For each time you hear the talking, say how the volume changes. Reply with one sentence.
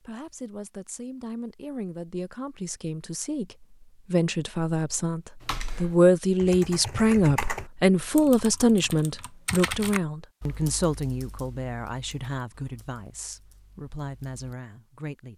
You can hear the talking from 0.0 to 15.3 s, getting louder then quieter.